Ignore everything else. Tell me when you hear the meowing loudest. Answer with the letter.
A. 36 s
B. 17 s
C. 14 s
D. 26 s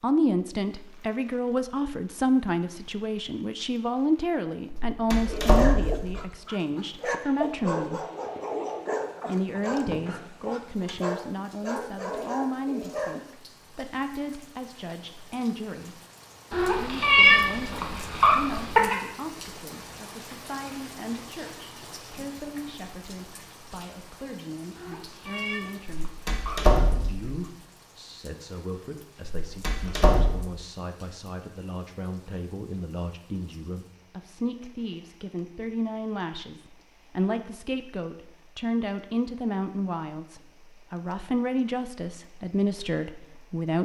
B.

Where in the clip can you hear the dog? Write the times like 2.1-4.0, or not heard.
5.2-13.2.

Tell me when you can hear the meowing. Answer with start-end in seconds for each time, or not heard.
16.5-19.0, 24.8-26.7.